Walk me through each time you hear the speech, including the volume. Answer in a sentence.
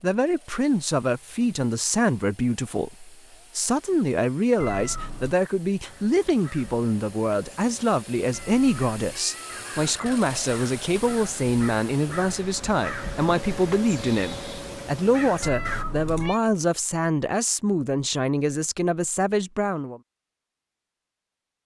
The speech can be heard from 0.0 to 20.0 s, at a steady volume.